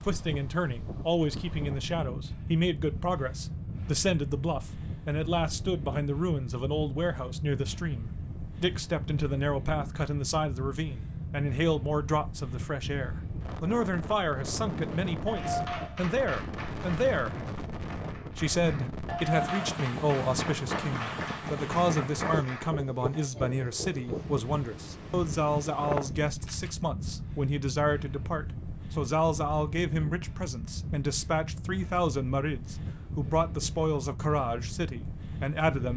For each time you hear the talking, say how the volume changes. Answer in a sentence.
The talking can be heard from 0.0 to 17.4 s, at a steady volume; and from 18.4 to 35.9 s, at a steady volume.